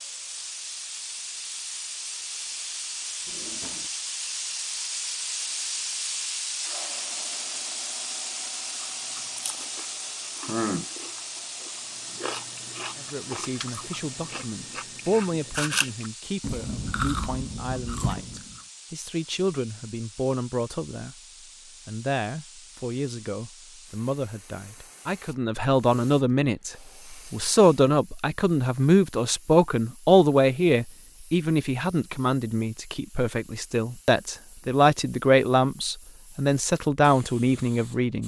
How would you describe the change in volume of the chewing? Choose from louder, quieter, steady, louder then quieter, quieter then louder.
quieter then louder.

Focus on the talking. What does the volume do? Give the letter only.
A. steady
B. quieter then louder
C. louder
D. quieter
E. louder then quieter
C.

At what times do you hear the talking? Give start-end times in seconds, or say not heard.
12.9-21.1, 21.9-38.2.